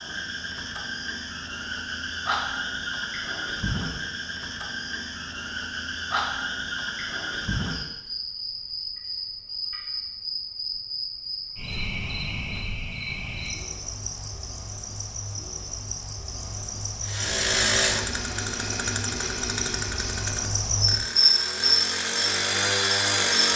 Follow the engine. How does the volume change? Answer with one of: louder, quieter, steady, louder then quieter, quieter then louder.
quieter then louder.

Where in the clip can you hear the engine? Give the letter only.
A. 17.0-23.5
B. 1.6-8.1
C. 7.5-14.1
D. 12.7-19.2
A.